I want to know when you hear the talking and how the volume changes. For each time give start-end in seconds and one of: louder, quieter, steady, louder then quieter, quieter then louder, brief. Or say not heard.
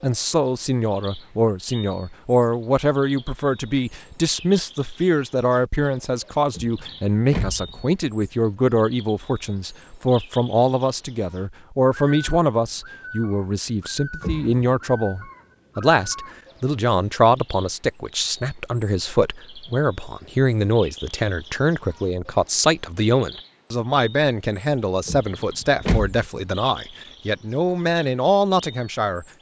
0.0-29.2 steady.